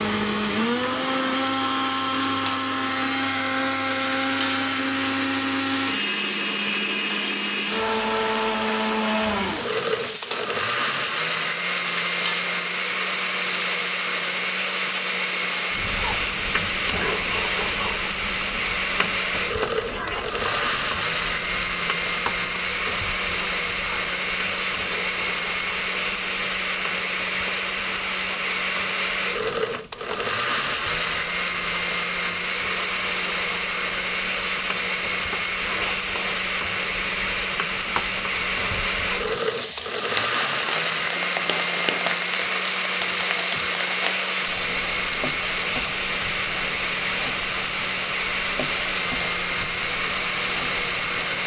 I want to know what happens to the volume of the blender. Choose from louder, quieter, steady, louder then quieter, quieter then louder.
steady.